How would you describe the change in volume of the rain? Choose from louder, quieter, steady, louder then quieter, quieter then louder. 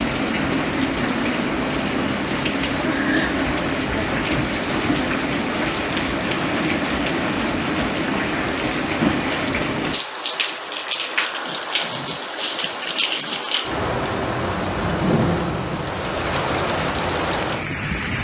steady.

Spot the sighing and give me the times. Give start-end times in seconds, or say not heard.
2.9-3.4.